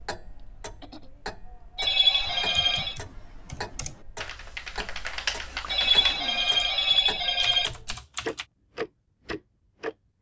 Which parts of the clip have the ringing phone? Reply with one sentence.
The ringing phone can be heard from 1.8 to 3.0 s and from 5.7 to 7.7 s.